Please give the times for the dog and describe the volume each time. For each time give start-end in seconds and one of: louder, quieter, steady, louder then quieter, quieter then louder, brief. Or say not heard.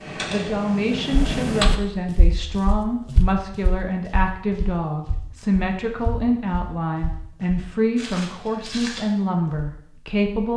not heard.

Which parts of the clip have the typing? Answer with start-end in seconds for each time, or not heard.
0.0-1.8.